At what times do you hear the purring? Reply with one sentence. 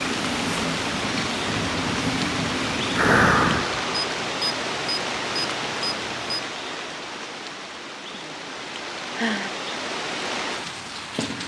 You can hear the purring from 0.0 to 3.8 s.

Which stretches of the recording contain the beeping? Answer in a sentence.
The beeping can be heard from 3.9 to 6.5 s.